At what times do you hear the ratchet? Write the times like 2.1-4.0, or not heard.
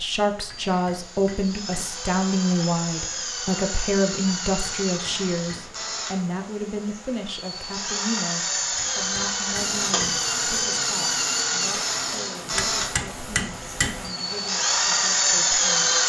not heard.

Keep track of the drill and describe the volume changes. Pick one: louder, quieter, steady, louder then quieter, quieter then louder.
louder.